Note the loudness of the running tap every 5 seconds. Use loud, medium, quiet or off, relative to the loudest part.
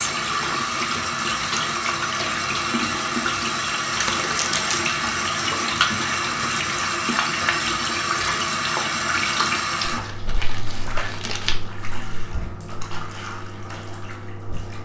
loud, loud, quiet.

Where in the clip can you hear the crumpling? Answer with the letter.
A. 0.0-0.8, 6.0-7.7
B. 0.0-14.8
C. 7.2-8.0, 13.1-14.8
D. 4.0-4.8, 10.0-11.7
D.